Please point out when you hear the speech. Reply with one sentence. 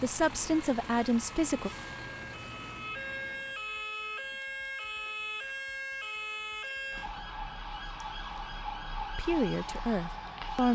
The speech can be heard from 0.0 to 1.7 s and from 9.2 to 10.7 s.